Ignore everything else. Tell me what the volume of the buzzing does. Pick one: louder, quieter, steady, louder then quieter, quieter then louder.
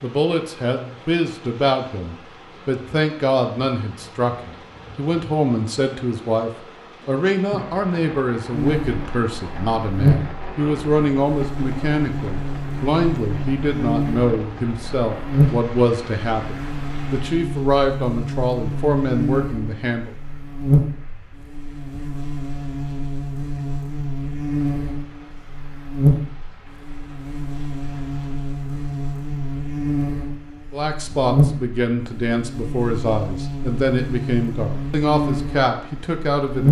steady.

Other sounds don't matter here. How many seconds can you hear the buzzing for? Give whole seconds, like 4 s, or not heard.
28 s.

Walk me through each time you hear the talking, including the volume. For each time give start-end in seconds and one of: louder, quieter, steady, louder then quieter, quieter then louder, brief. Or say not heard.
0.0-20.1 steady
30.7-36.6 steady.